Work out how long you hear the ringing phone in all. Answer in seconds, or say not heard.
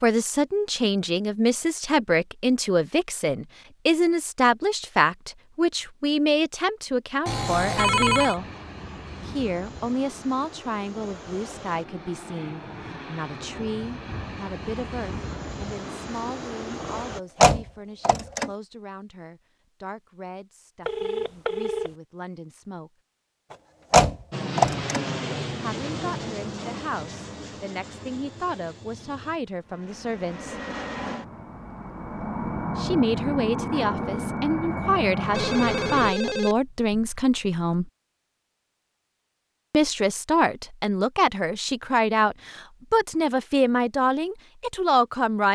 4 s.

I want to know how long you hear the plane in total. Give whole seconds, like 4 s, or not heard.
21 s.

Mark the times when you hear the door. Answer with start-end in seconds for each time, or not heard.
17.4-18.5, 23.9-25.0.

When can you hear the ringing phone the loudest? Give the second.
8 s.